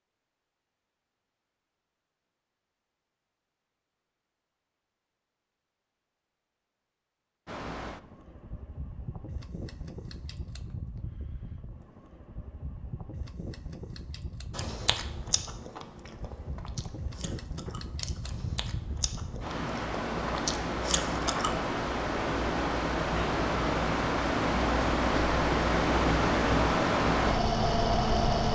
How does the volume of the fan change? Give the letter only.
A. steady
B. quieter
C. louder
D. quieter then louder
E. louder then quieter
C.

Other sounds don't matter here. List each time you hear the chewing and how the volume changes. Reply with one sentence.
The chewing can be heard from 14.5 to 21.6 s, getting quieter then louder.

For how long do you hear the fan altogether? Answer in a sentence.
The fan can be heard for 21 seconds in total.